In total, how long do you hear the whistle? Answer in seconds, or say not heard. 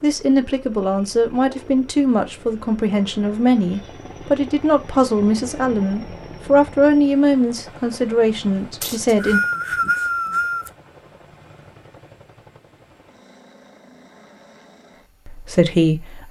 2 s.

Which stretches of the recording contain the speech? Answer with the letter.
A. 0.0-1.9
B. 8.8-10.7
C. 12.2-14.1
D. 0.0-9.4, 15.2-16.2
D.